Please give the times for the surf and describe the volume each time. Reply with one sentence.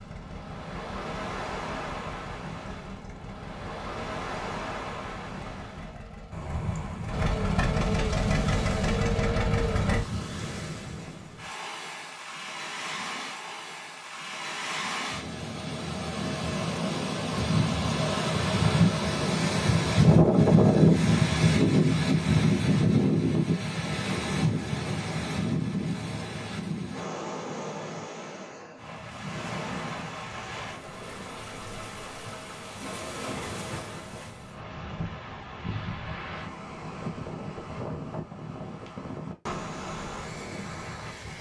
The surf can be heard from 0.0 to 41.3 s, getting louder then quieter.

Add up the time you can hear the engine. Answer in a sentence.
The engine can be heard for 10 seconds in total.